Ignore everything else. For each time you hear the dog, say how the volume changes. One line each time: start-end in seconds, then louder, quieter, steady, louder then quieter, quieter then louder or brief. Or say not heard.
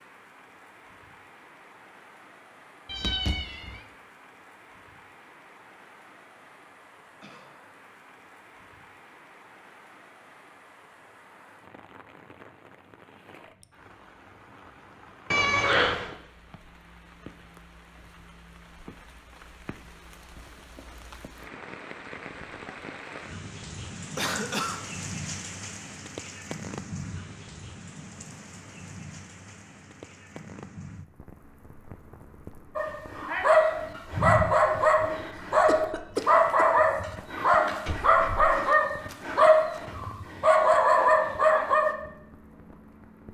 32.8-42.0 steady.